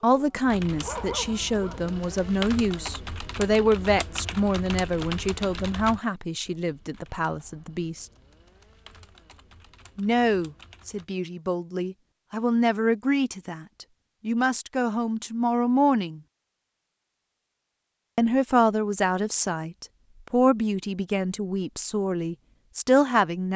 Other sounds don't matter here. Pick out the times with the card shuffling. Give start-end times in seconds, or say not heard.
not heard.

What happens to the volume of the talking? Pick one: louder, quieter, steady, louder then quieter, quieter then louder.
steady.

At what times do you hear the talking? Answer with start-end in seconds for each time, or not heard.
0.0-8.1, 9.9-16.2, 18.1-23.5.